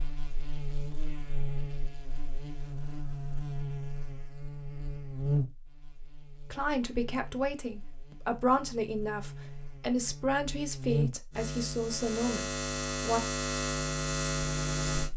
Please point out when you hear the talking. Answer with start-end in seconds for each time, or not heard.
6.5-13.2.